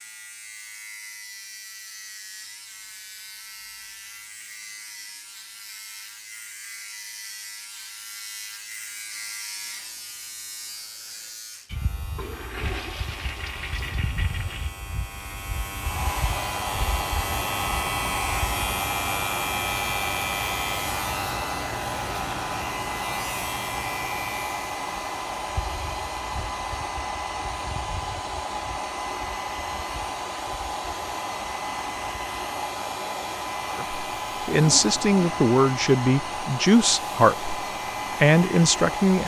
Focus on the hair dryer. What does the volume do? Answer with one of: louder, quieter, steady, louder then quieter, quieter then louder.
steady.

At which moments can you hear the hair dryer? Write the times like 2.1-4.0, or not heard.
15.8-39.2.